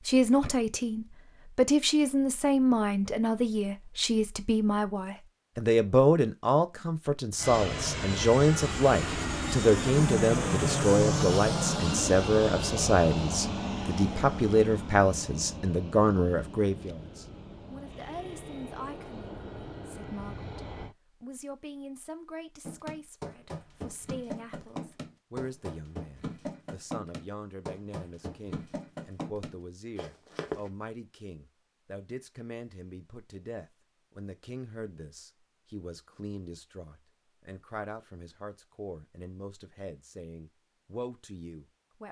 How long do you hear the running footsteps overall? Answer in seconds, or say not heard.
8 s.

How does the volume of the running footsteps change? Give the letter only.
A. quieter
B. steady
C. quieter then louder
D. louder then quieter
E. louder
B.